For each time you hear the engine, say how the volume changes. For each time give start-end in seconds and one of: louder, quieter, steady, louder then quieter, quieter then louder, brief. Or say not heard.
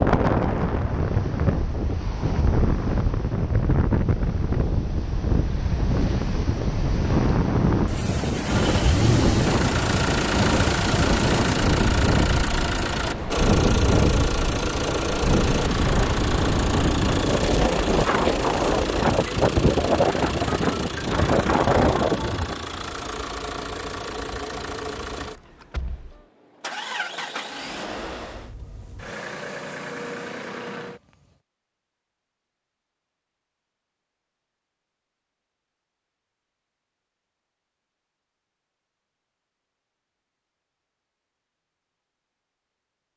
8.4-31.2 quieter.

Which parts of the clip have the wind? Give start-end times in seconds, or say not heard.
0.0-22.6.